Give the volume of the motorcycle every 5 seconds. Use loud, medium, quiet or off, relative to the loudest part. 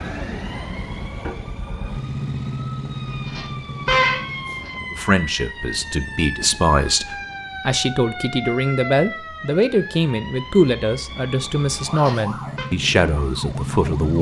loud, off, loud.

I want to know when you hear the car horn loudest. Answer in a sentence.
The volume of the car horn peaks at 4 seconds.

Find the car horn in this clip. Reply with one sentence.
The car horn can be heard from 3.2 to 4.7 s and from 11.8 to 12.7 s.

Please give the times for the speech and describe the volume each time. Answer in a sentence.
The speech can be heard from 4.9 to 14.1 s, at a steady volume.